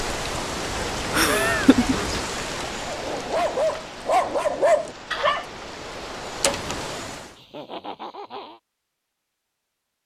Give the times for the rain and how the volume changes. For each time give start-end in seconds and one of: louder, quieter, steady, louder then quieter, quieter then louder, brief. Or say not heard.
0.0-7.4 quieter then louder.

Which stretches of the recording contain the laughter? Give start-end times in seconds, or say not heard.
1.1-1.9, 7.3-8.6.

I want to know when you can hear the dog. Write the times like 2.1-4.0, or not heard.
2.8-5.5.